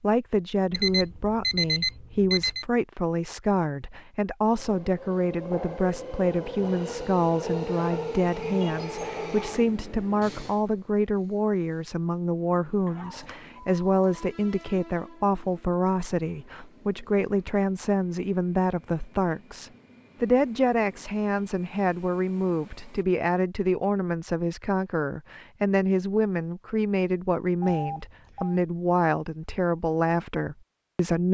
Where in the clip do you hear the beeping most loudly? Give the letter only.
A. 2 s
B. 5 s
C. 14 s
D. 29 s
A.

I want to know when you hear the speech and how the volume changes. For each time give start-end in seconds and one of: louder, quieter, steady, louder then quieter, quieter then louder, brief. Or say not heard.
0.0-31.2 steady.